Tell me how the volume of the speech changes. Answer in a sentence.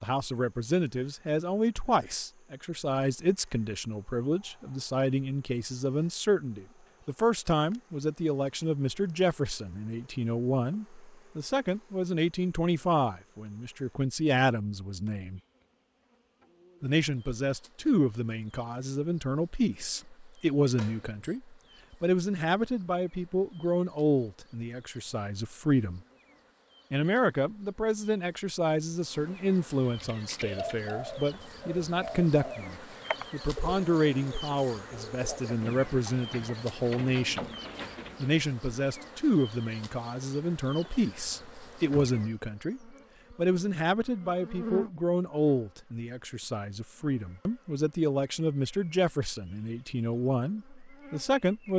The volume of the speech stays about the same.